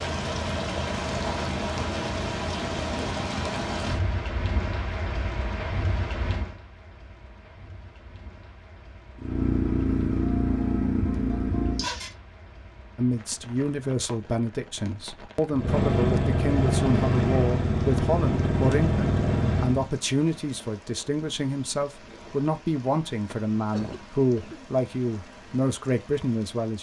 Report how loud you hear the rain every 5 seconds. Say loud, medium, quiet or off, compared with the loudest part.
loud, medium, quiet, quiet, quiet, quiet.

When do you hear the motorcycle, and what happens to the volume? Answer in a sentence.
The motorcycle can be heard briefly from 9.2 to 12.1 s; and from 15.5 to 19.9 s, at a steady volume.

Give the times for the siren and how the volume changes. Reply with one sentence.
The siren can't be heard in this clip.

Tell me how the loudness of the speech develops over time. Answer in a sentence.
The volume of the speech stays about the same.